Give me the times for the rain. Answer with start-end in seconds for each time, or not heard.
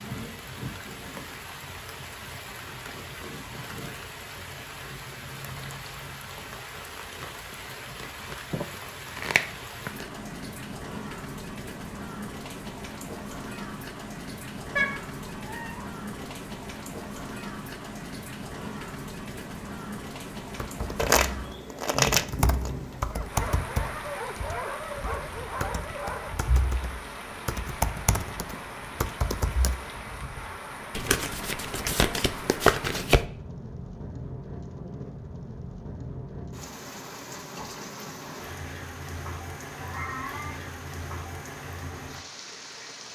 0.0-43.1.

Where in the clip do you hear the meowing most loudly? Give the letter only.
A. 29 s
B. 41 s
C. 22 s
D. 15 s
D.